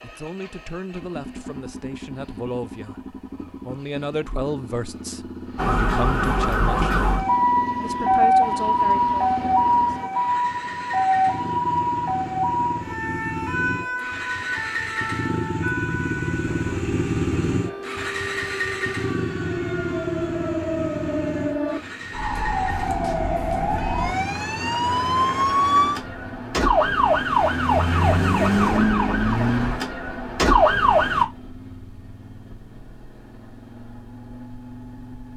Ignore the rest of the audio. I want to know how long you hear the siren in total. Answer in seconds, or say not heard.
26 s.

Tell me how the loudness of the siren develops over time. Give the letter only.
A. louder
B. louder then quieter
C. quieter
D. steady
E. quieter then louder
E.